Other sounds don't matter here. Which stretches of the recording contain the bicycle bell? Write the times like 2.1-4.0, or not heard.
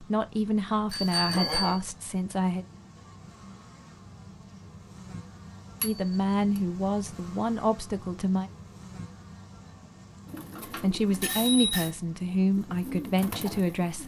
0.9-1.8, 5.8-6.6, 10.6-11.9.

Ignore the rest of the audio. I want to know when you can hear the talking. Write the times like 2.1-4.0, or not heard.
0.0-2.6, 5.8-8.5, 10.8-14.0.